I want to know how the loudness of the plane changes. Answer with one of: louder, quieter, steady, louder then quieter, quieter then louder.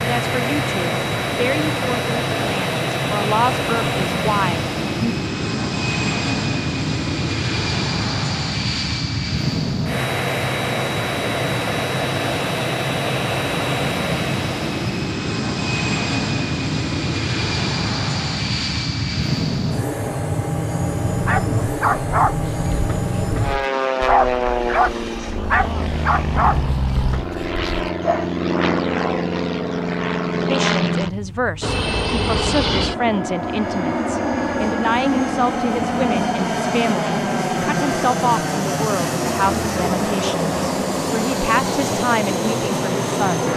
steady.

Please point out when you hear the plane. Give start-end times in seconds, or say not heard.
0.0-43.5.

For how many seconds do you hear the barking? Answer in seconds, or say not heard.
7 s.